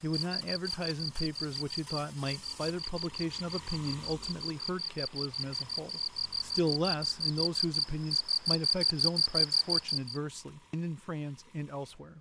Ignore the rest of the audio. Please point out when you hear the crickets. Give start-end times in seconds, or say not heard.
0.0-10.2.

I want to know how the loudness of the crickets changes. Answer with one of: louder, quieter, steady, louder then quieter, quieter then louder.
louder.